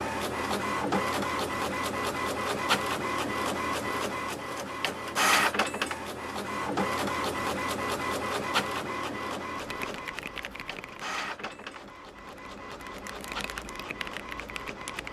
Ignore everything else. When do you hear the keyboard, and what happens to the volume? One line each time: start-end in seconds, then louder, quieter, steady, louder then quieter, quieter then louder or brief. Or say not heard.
9.6-15.0 quieter then louder.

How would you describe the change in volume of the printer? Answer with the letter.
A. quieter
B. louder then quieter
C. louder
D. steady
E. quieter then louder
A.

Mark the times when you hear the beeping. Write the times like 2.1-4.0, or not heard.
not heard.